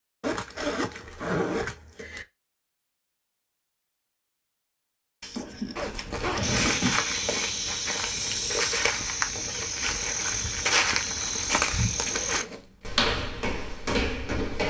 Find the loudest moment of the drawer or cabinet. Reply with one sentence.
The loudest moment of the drawer or cabinet is at 7 seconds.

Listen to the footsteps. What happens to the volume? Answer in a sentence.
The volume of the footsteps stays about the same.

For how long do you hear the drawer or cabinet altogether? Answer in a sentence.
The drawer or cabinet can be heard for 2 seconds in total.